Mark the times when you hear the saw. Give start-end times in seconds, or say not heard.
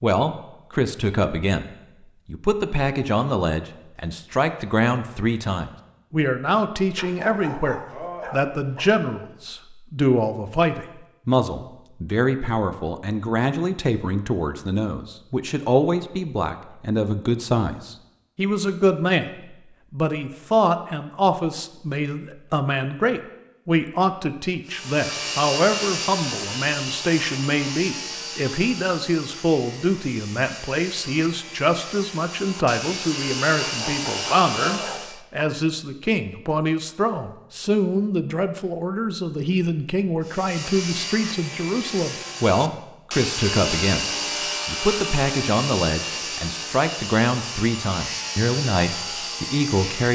24.6-35.2, 40.2-50.1.